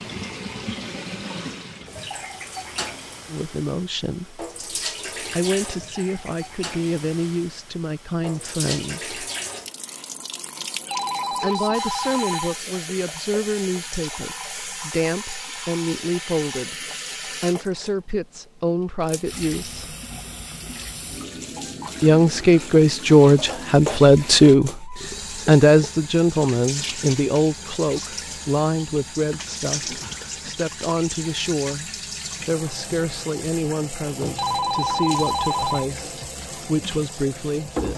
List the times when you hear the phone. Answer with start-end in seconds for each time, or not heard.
10.9-12.6, 34.4-35.9.